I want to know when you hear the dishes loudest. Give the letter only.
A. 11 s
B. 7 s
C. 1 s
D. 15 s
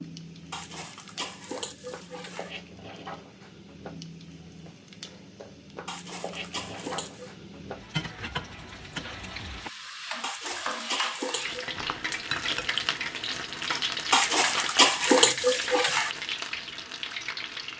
D.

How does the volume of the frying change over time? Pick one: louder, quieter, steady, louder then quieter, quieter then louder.
louder.